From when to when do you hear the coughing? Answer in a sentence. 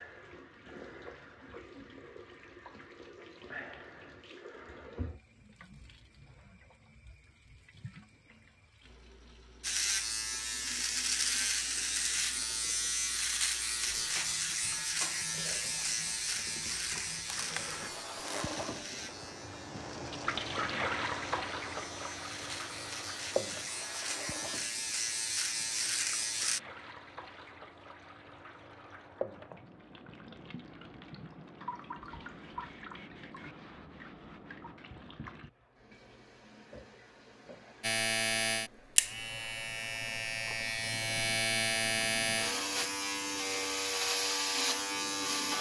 You can't hear the coughing here.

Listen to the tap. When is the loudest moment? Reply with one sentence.
The loudest moment of the tap is at 21 seconds.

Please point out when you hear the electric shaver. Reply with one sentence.
The electric shaver can be heard from 9.6 to 26.6 s and from 37.8 to 45.5 s.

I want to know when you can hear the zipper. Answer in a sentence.
The zipper can be heard from 17.2 to 18.4 s.